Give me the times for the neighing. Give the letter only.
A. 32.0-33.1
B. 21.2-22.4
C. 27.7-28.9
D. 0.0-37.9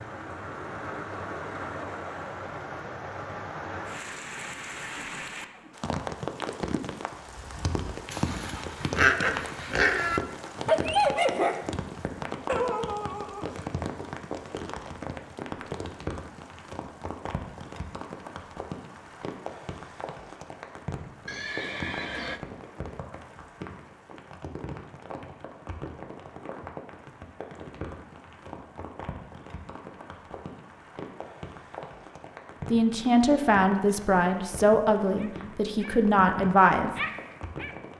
B.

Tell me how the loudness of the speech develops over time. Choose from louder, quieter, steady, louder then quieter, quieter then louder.
quieter then louder.